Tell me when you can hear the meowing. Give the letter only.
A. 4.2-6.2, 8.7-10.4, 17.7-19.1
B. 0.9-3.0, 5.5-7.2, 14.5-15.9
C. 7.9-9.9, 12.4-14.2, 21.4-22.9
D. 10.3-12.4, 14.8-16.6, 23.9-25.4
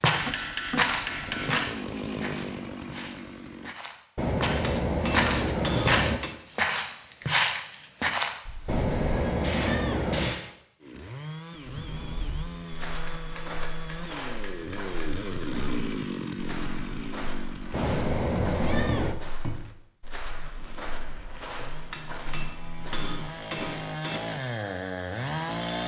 A.